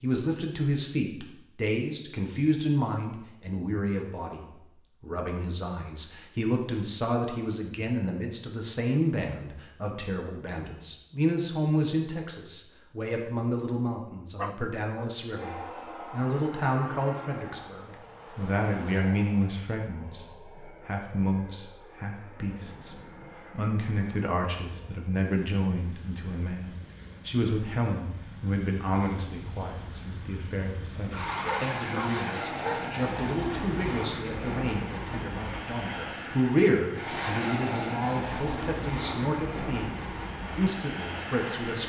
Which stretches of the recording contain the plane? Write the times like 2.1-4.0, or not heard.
15.3-41.8.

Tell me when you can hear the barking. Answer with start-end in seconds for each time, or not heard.
14.3-15.1, 31.4-33.0.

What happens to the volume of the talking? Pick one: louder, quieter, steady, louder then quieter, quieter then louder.
steady.